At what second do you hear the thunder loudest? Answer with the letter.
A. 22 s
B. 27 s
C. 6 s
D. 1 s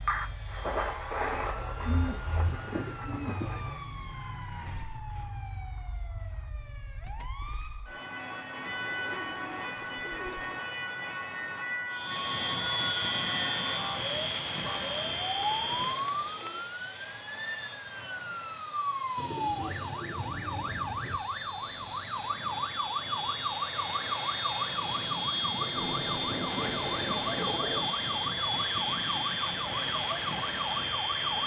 D.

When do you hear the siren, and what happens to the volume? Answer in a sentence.
You can hear the siren from 0.0 to 31.4 s, getting louder.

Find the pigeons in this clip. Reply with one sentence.
You can hear the pigeons from 1.8 to 3.6 s, from 8.7 to 10.6 s, from 15.1 to 16.6 s, from 19.1 to 21.2 s and from 25.6 to 27.9 s.